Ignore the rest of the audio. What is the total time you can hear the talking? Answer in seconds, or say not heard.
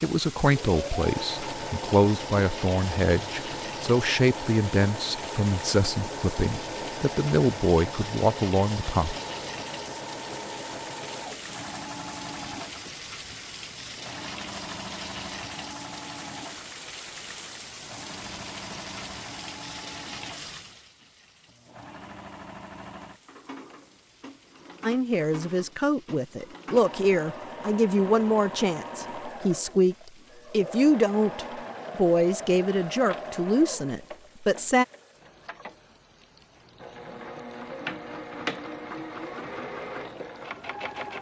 19 s.